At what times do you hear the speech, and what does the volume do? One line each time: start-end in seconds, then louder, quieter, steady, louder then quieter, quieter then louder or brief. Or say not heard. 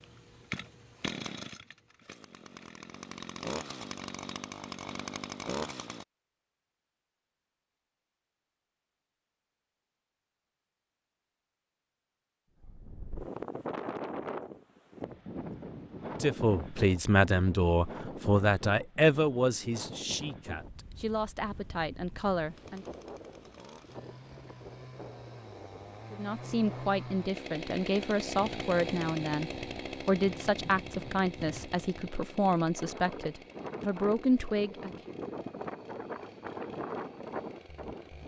16.2-22.9 quieter
26.1-35.0 steady.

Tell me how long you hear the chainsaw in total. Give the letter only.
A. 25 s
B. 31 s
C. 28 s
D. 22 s
D.